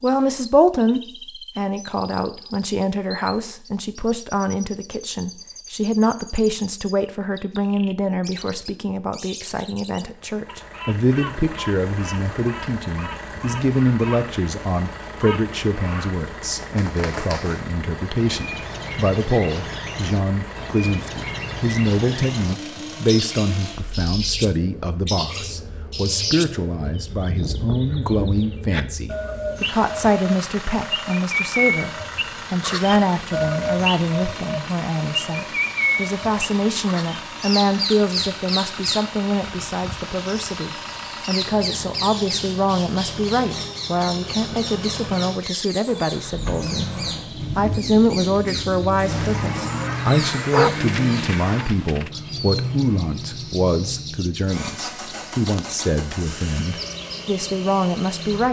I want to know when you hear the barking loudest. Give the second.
51 s.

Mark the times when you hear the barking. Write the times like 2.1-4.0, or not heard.
50.5-52.1.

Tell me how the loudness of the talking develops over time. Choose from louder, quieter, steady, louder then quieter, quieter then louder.
steady.